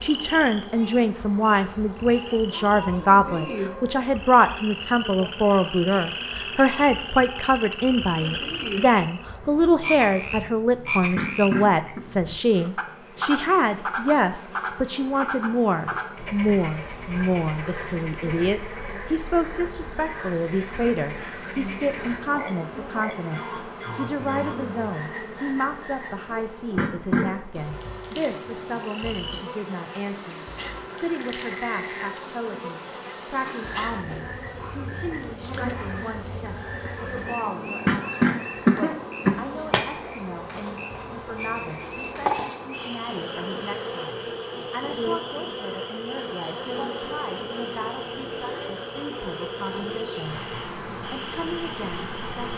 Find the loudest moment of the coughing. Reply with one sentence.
The volume of the coughing peaks at 39 seconds.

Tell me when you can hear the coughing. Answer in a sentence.
You can hear the coughing from 11.2 to 12.1 s, from 26.8 to 27.6 s and from 37.9 to 39.9 s.